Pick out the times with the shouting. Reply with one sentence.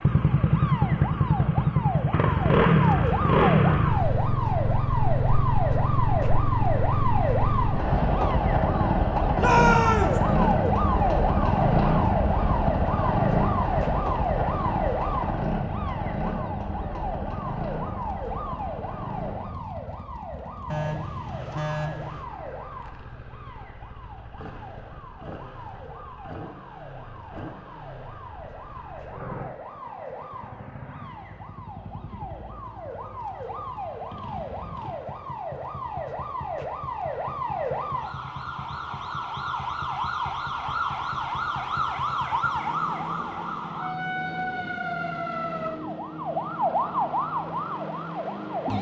You can hear the shouting from 9.3 to 10.2 s.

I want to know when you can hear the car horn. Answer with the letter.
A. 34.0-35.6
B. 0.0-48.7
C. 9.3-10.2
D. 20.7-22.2
D.